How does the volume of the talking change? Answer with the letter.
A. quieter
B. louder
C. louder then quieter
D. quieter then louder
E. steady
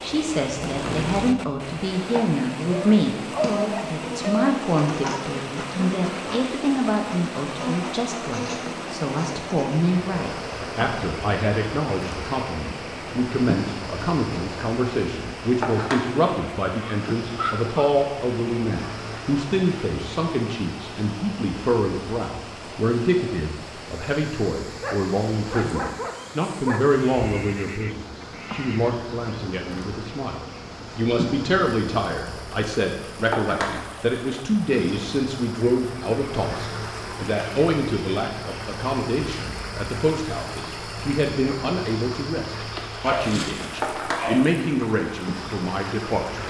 E.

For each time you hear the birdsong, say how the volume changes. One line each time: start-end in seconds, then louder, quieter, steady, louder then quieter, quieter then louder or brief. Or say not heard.
not heard.